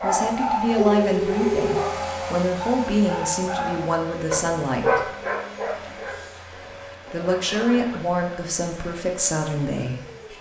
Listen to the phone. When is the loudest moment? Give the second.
1 s.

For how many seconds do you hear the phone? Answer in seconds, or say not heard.
2 s.